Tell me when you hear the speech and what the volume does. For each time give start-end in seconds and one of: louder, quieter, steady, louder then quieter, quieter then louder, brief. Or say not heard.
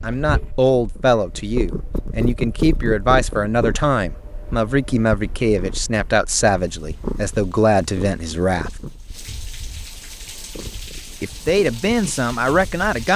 0.0-8.8 steady
11.2-13.1 brief.